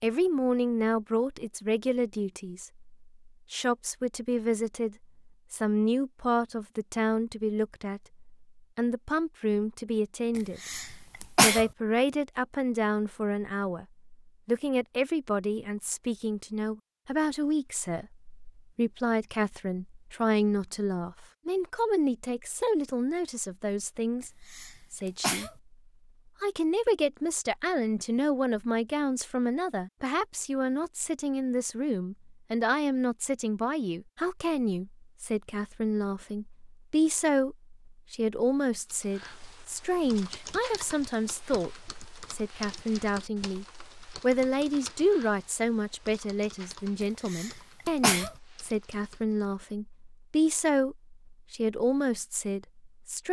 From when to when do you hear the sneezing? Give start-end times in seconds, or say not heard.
10.7-11.7, 24.5-25.5, 47.3-48.3.